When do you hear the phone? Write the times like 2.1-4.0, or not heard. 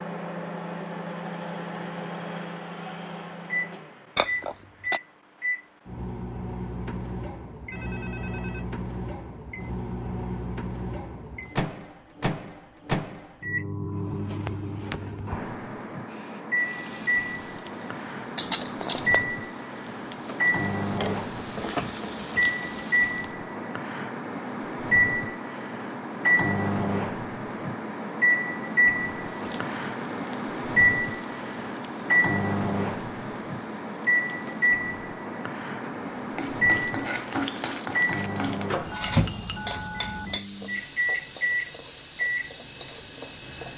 7.7-8.7, 16.1-17.4, 38.9-40.3.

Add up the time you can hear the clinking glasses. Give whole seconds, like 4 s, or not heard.
3 s.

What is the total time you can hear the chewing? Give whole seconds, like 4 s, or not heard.
not heard.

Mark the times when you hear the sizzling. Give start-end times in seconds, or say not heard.
16.6-23.4, 29.1-43.7.